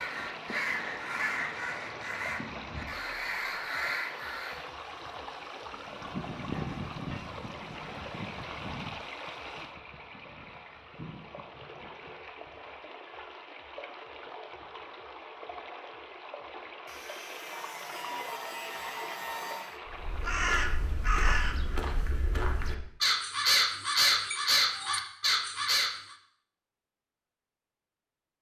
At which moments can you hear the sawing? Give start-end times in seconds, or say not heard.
5.7-8.3, 16.9-19.8.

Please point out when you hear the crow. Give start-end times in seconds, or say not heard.
0.0-4.7, 19.9-25.9.